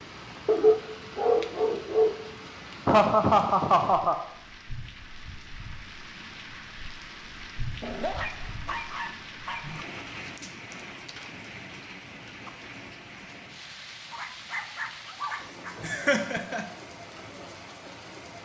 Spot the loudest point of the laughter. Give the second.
3 s.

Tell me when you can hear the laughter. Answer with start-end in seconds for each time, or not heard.
2.9-4.2, 15.8-16.6.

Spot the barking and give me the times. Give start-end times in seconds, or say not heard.
0.5-2.1, 7.8-9.8, 14.1-15.8.